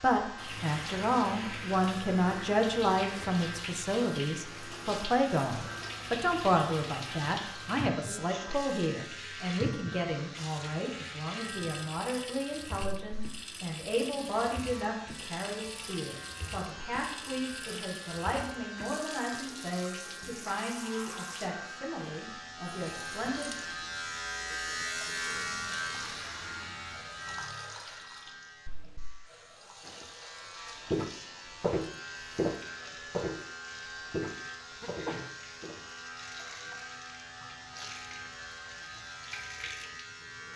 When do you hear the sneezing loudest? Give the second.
35 s.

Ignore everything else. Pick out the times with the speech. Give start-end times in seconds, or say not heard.
0.0-23.6.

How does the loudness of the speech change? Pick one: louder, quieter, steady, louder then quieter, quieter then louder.
quieter.